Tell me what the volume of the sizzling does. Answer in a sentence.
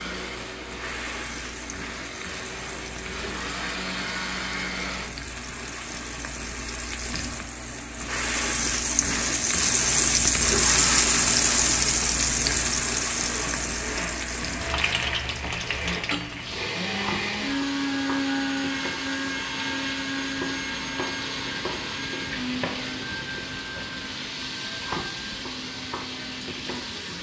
The volume of the sizzling goes up, then down.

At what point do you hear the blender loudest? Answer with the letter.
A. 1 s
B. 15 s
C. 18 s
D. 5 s
C.